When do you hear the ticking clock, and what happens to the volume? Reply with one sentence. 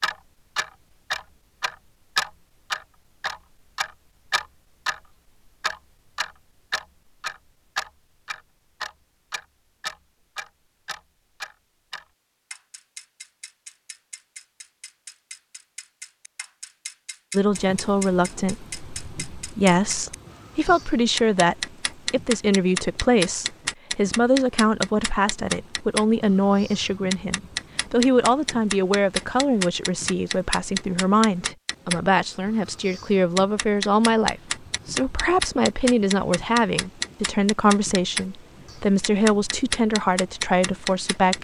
You can hear the ticking clock from 0.0 to 41.3 s, getting quieter then louder.